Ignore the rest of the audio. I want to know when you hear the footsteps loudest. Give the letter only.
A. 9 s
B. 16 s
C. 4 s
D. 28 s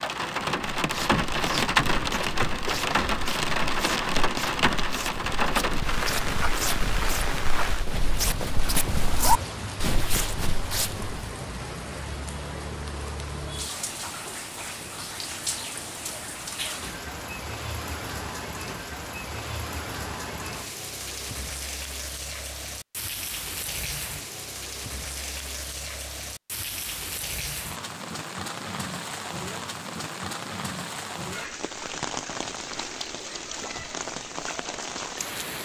A.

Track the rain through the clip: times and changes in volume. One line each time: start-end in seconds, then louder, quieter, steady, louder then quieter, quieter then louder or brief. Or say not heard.
0.0-35.6 quieter.